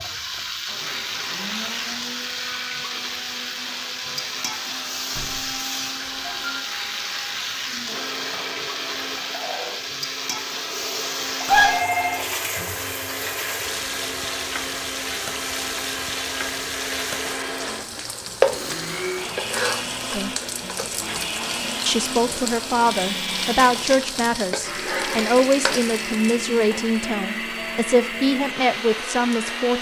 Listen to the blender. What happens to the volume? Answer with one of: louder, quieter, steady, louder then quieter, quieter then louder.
louder.